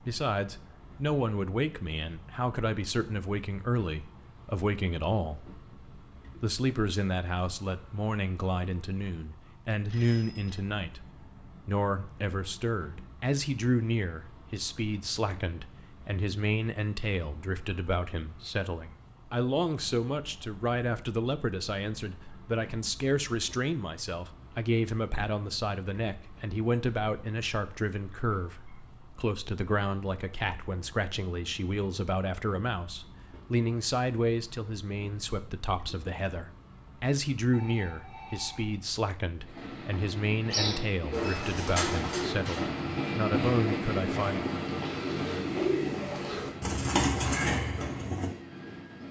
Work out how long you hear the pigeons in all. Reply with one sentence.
The pigeons can be heard for 8 seconds in total.